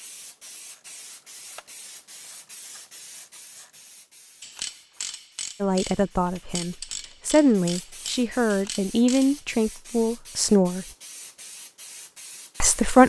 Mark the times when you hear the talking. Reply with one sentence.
You can hear the talking from 5.6 to 10.8 s and from 12.6 to 13.0 s.